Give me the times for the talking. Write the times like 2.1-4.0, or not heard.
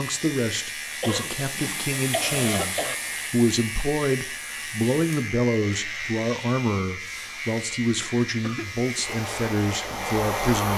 0.0-10.7.